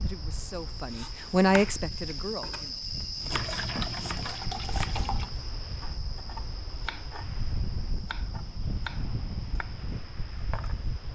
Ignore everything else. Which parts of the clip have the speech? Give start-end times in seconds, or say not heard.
0.0-2.8.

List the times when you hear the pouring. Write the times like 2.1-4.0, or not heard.
3.3-5.3.